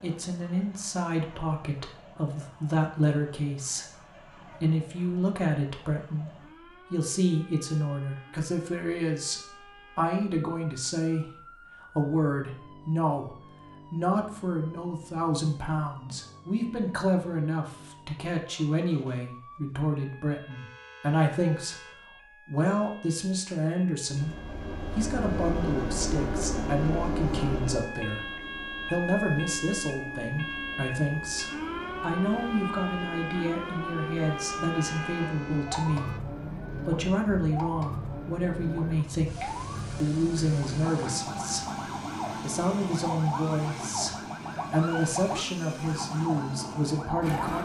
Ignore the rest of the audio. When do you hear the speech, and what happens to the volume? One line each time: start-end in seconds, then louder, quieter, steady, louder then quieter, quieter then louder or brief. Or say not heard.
0.0-47.5 steady.